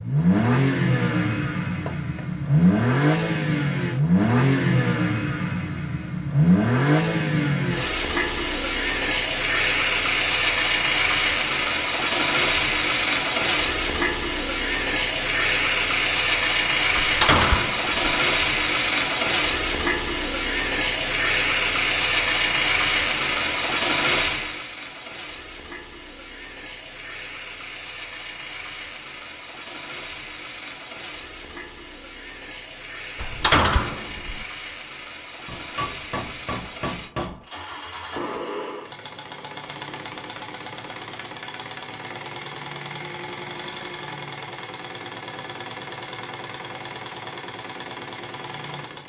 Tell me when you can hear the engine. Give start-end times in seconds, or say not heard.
0.0-49.0.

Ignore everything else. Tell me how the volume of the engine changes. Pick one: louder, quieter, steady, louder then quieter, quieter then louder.
quieter.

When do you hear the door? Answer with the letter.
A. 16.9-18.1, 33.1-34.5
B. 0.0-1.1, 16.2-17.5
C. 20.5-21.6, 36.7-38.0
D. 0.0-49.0
A.